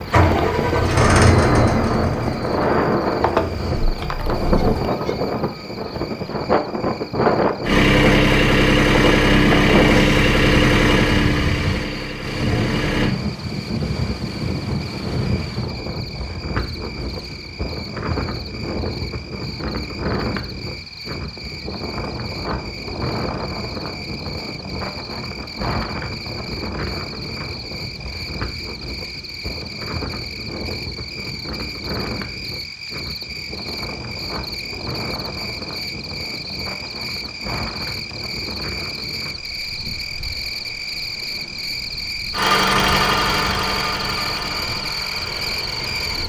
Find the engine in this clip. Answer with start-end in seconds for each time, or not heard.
0.0-4.8, 7.6-13.1, 42.3-46.2.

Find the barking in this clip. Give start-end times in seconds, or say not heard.
not heard.